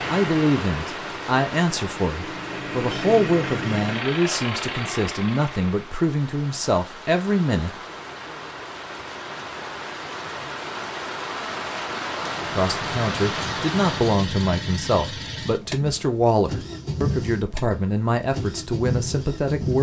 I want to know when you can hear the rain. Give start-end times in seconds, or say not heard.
0.0-14.2.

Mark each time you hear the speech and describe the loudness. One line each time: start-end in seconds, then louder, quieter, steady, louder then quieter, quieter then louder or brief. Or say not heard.
0.1-7.7 steady
12.4-19.7 steady.